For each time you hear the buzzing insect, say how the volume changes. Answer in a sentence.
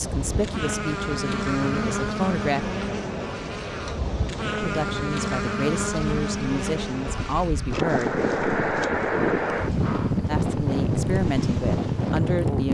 You can hear the buzzing insect from 0.0 to 12.6 s, getting quieter.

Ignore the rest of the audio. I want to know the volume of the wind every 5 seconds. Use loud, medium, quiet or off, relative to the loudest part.
medium, loud, loud.